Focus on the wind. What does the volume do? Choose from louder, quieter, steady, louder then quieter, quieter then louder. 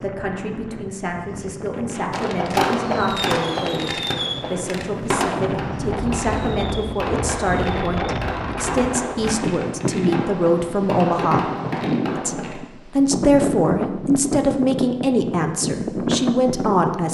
louder.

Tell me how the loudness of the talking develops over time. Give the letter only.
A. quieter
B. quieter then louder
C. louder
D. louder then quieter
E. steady
C.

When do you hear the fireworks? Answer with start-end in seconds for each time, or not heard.
2.1-12.6.